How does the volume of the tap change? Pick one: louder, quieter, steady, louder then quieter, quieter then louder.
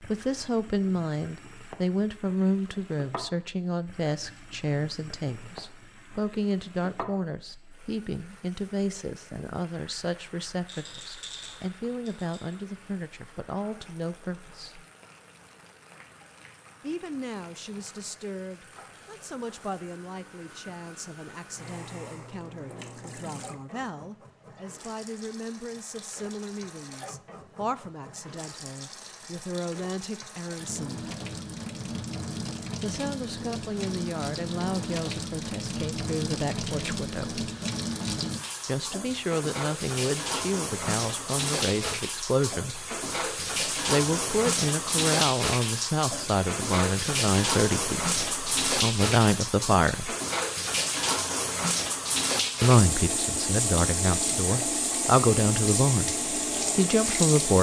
louder.